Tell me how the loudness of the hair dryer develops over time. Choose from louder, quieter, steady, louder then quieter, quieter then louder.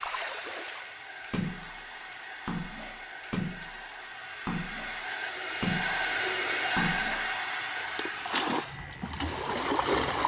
louder then quieter.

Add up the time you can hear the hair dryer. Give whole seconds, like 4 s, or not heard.
10 s.